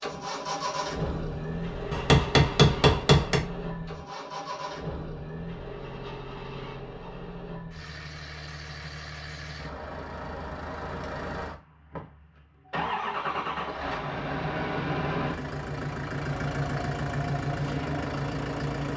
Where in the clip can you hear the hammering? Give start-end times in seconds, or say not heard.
1.9-3.4.